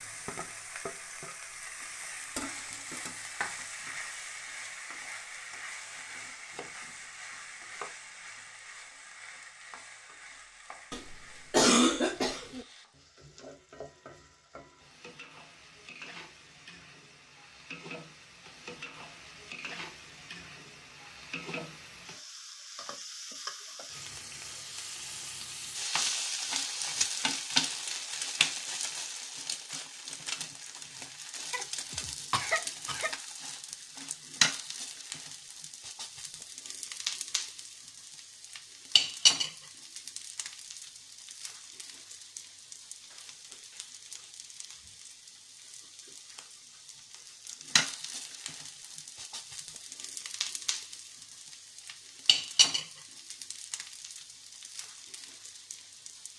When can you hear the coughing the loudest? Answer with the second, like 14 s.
12 s.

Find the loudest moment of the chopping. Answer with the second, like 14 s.
8 s.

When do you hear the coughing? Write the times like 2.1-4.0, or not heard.
10.9-12.7, 31.5-33.1.